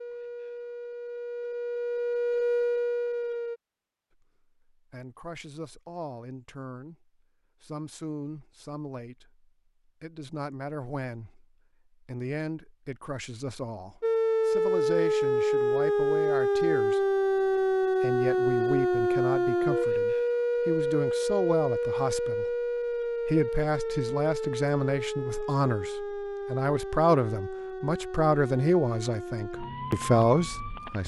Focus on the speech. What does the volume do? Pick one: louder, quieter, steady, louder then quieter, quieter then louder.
louder.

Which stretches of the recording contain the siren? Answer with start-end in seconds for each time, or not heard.
0.0-3.6, 14.0-31.0.